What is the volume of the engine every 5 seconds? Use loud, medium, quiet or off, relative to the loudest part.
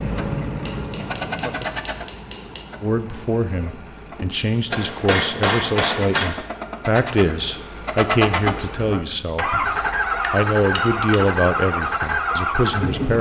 medium, loud, loud.